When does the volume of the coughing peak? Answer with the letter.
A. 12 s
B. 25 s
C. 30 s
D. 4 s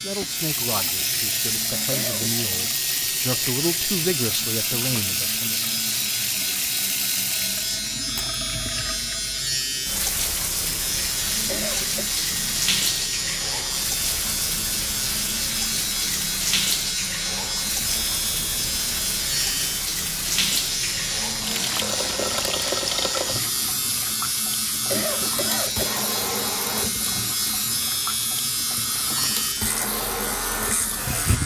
B.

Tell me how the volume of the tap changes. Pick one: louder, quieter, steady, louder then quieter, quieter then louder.
steady.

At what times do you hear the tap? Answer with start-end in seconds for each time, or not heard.
0.1-31.4.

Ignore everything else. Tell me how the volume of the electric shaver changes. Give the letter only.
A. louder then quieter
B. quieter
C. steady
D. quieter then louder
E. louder
C.